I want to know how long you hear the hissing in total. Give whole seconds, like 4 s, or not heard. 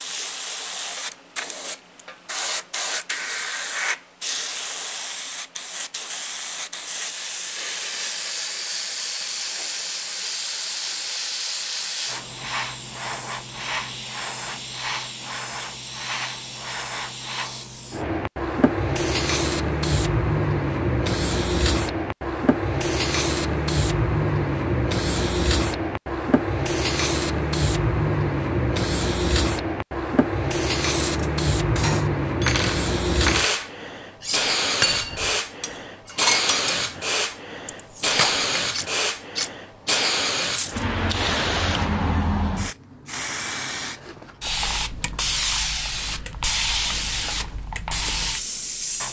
49 s.